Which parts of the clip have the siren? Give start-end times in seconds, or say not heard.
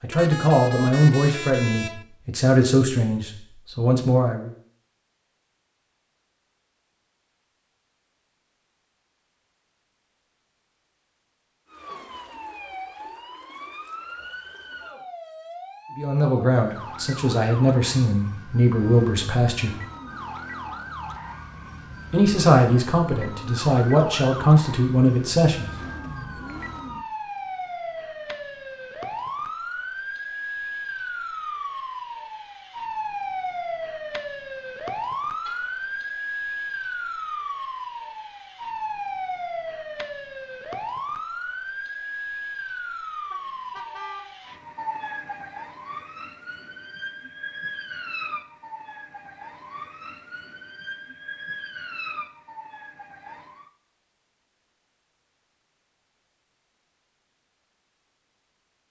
11.7-53.7.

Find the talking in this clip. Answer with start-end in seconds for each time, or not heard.
0.0-4.5, 15.9-19.7, 22.1-25.7.